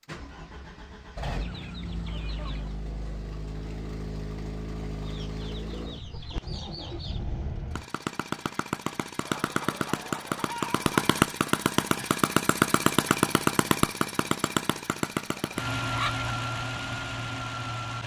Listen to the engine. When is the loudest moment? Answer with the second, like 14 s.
13 s.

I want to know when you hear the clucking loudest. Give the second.
16 s.